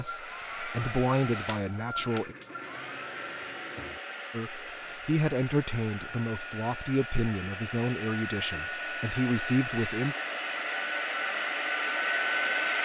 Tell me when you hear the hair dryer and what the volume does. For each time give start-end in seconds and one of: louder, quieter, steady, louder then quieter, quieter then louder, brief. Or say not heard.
0.0-12.8 louder.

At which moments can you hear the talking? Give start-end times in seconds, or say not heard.
0.0-2.4, 4.3-10.2.